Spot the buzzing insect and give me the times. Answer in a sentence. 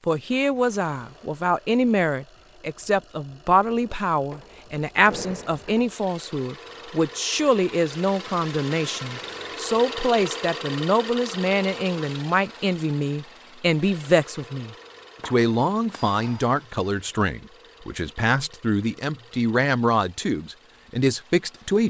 You can't hear the buzzing insect here.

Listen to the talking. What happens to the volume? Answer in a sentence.
The loudness of the talking stays about the same.